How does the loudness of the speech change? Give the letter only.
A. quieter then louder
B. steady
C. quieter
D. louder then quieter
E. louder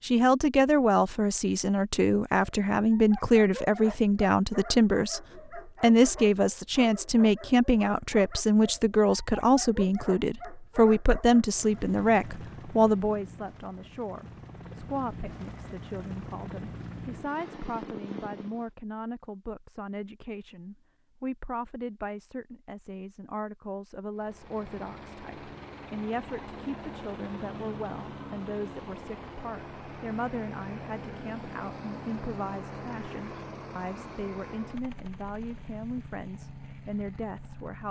C.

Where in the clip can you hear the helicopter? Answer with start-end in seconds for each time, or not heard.
11.4-18.7, 24.1-37.8.